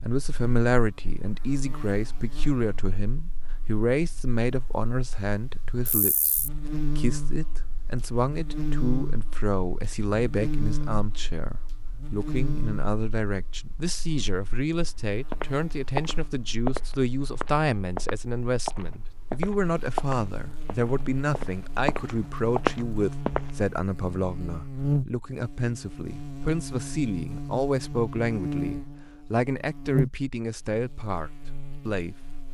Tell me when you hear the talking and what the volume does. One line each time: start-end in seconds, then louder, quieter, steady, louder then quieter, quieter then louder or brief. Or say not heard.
0.0-32.4 steady.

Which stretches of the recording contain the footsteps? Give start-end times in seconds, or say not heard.
15.1-23.6.